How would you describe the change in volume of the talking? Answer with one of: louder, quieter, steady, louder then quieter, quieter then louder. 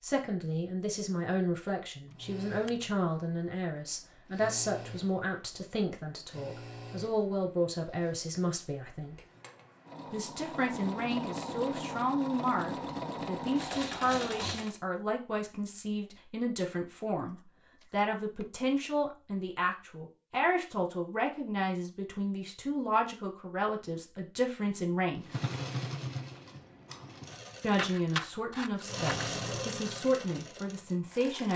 steady.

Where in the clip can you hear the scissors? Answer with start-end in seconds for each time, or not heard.
2.0-2.9, 17.2-19.1, 27.8-29.3.